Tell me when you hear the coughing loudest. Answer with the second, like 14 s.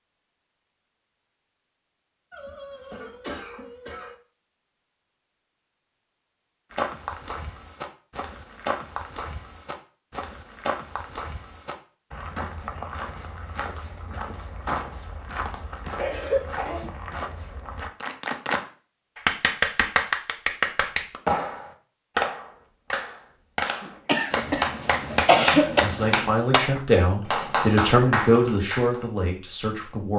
25 s.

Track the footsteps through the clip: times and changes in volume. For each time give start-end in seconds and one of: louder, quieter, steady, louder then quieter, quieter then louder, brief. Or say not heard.
6.7-17.9 steady.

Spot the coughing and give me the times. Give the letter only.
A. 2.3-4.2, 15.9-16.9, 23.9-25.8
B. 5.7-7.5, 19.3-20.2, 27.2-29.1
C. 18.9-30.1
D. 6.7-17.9
A.